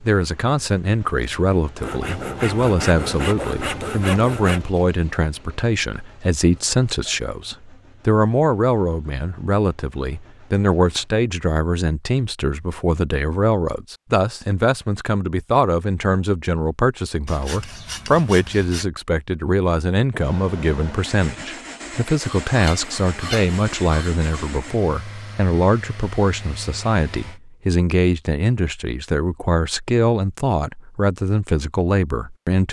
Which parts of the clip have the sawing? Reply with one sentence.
The sawing can be heard from 1.8 to 4.7 s, from 17.2 to 18.9 s and from 22.2 to 24.5 s.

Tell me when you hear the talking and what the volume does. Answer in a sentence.
You can hear the talking from 0.0 to 32.6 s, at a steady volume.